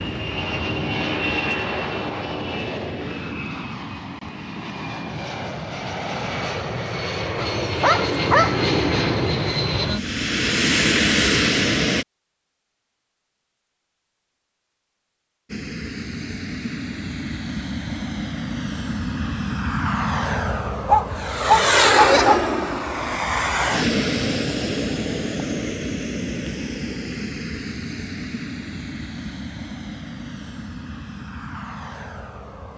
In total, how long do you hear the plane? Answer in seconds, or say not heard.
29 s.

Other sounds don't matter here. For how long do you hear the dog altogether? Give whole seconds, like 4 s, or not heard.
3 s.